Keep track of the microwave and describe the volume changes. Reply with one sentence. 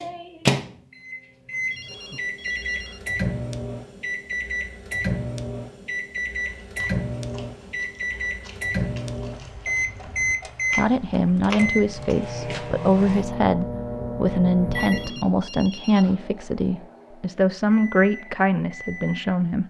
The loudness of the microwave goes down.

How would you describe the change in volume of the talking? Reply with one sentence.
The volume of the talking stays about the same.